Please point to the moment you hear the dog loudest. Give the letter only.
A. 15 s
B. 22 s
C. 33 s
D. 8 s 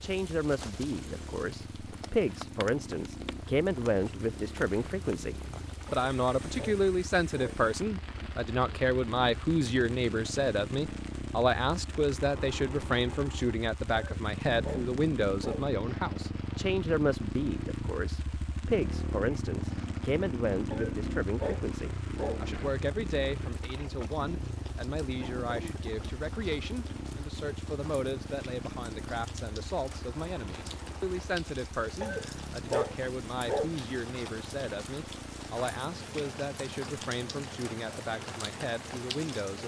C.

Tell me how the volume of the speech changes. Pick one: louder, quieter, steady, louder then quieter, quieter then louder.
quieter.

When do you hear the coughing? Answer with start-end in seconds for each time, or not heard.
25.1-26.1.